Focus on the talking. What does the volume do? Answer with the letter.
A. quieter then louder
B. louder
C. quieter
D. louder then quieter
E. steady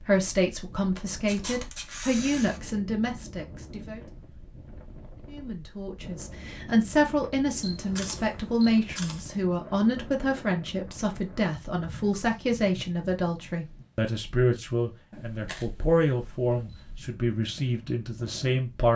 E.